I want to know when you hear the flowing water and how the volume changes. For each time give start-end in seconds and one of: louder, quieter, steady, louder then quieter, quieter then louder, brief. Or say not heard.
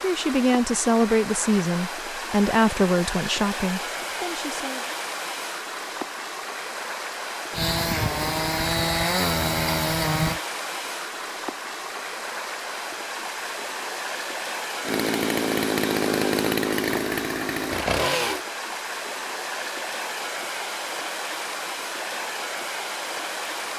0.0-23.7 steady.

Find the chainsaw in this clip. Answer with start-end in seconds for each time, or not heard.
7.5-10.4, 14.8-18.4.